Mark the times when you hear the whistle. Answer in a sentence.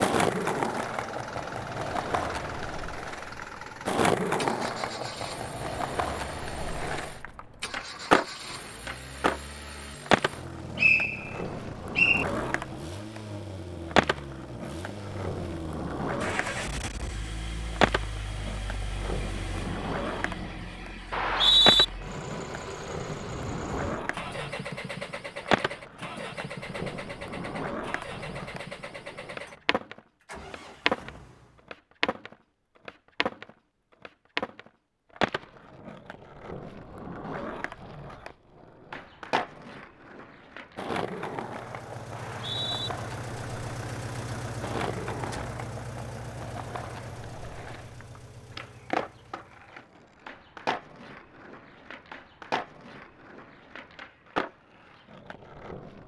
You can hear the whistle from 10.8 to 12.2 s, from 21.1 to 21.9 s and from 42.1 to 42.9 s.